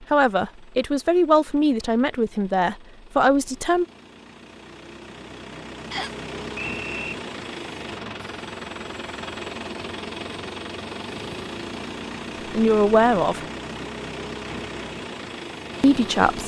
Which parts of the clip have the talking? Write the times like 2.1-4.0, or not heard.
0.1-3.9, 12.5-13.4, 15.8-16.4.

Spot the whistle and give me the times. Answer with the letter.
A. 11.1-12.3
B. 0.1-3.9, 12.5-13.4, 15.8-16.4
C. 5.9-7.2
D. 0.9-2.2
C.